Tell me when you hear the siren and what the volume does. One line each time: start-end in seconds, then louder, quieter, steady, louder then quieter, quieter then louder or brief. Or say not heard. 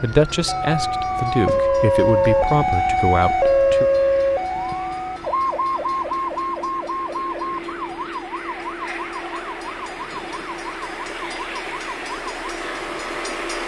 0.0-13.6 quieter.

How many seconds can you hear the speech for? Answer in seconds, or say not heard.
4 s.